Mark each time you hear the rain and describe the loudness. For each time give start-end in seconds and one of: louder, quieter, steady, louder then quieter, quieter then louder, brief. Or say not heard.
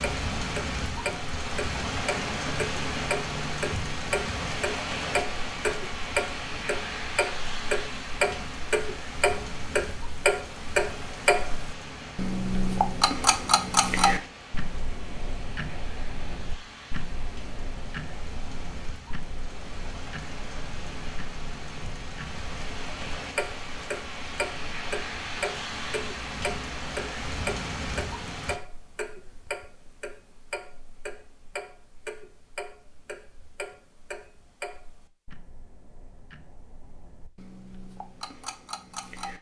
0.0-28.6 quieter then louder.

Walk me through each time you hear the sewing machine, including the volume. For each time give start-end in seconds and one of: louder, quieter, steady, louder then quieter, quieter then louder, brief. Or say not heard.
not heard.